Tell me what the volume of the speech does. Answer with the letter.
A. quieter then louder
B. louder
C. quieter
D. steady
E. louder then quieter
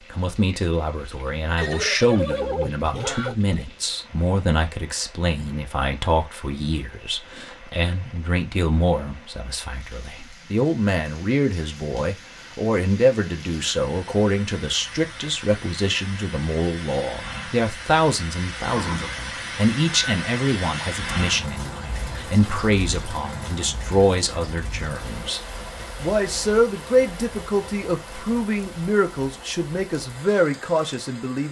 D.